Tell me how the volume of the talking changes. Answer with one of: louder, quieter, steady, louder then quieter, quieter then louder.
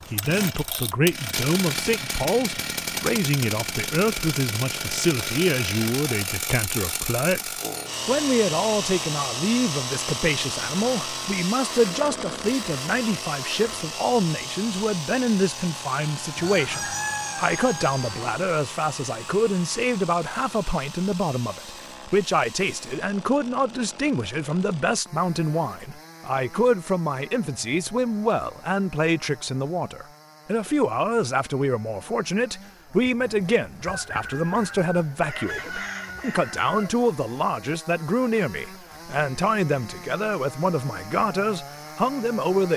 steady.